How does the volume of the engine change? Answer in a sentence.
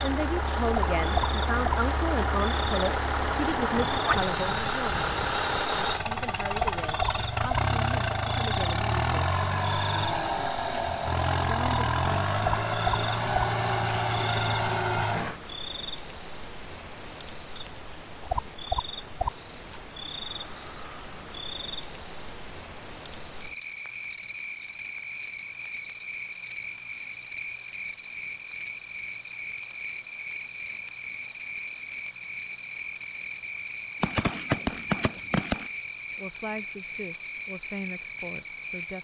The volume of the engine stays about the same.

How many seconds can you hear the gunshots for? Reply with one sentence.
The gunshots can be heard for 2 seconds in total.